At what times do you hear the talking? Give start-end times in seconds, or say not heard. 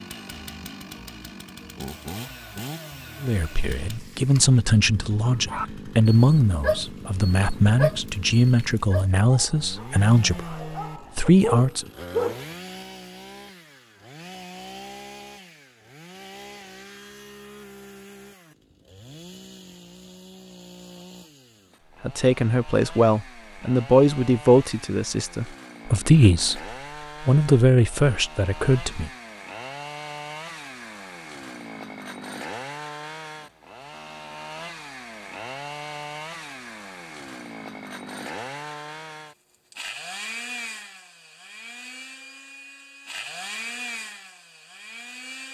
3.2-11.8, 22.0-26.6, 27.2-29.1.